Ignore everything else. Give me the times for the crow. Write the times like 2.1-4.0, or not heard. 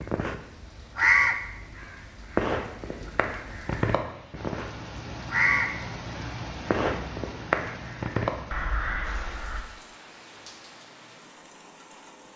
0.0-9.6.